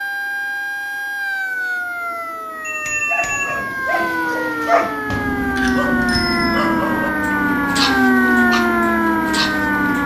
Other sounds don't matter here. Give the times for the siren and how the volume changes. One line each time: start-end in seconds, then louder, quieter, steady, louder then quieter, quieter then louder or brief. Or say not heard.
0.0-10.0 louder.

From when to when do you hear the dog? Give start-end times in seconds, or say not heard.
3.1-10.0.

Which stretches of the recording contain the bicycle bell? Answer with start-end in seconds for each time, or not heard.
2.6-3.5, 5.0-6.7.